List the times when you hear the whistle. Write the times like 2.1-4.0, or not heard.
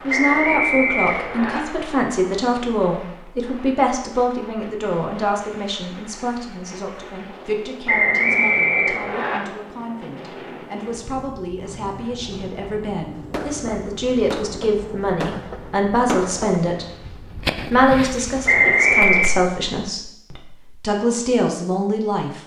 0.1-1.6, 7.8-9.4, 18.4-19.4.